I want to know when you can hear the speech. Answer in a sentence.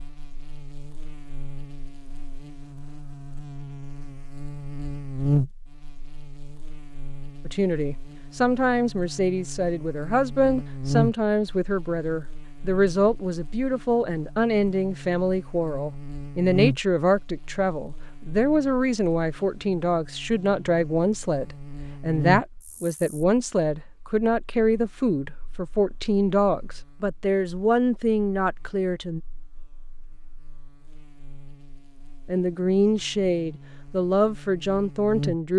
You can hear the speech from 7.5 to 29.2 s and from 32.2 to 35.5 s.